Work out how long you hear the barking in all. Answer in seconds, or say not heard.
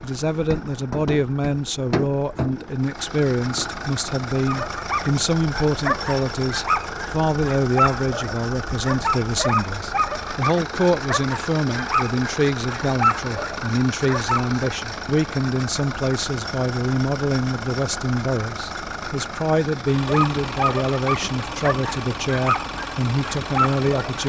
14 s.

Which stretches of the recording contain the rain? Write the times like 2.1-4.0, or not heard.
not heard.